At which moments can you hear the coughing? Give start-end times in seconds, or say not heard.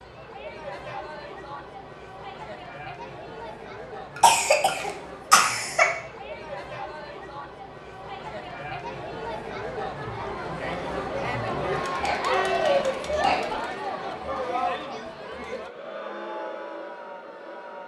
4.2-5.9, 11.8-13.6.